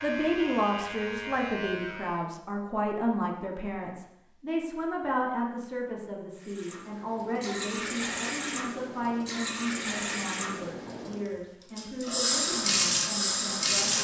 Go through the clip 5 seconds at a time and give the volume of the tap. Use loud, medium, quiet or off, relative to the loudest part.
off, medium, loud.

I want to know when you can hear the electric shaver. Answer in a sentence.
You can hear the electric shaver from 0.0 to 2.3 s.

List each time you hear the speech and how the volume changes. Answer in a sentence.
You can hear the speech from 0.0 to 13.9 s, getting quieter.